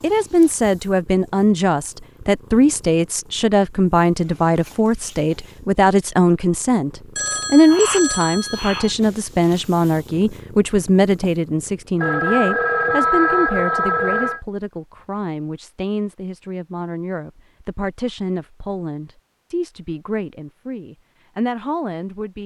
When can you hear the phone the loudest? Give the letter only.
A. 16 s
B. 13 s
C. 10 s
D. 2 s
B.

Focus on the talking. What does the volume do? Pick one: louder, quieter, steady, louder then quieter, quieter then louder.
quieter.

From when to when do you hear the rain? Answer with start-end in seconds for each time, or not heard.
not heard.